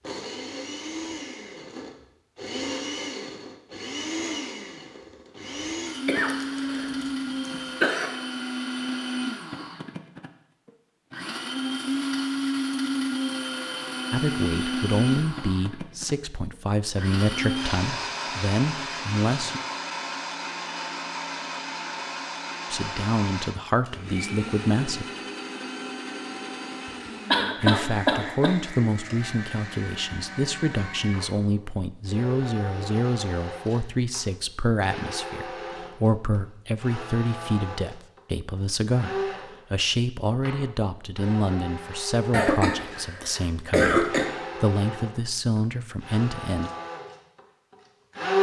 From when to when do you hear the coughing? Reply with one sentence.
You can hear the coughing from 6.0 to 8.1 s, from 27.3 to 28.6 s and from 42.3 to 44.2 s.